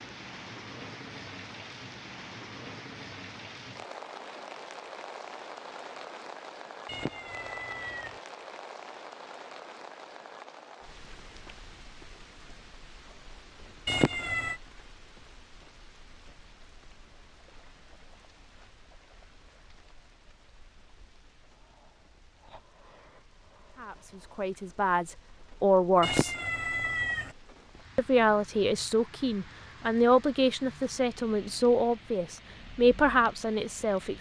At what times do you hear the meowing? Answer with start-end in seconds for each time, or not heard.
6.8-8.2, 13.8-14.6, 26.0-27.4.